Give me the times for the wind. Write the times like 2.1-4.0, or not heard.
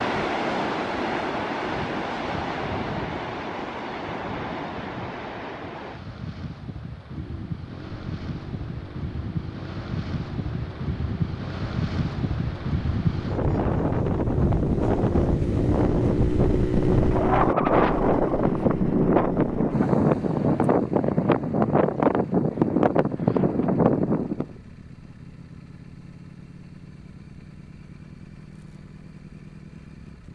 0.0-24.6.